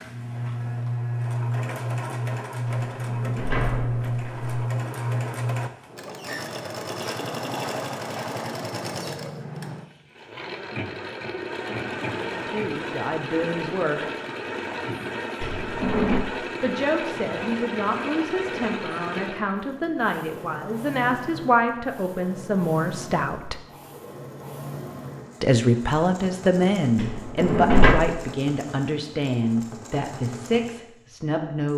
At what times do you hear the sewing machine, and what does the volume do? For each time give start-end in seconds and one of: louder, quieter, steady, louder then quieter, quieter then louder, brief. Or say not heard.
0.0-31.7 quieter.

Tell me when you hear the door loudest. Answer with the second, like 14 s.
28 s.